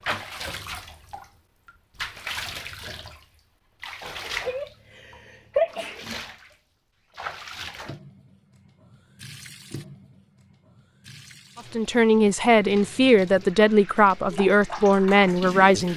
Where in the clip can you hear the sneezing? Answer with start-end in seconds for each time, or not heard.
4.2-6.0.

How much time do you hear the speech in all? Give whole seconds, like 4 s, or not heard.
4 s.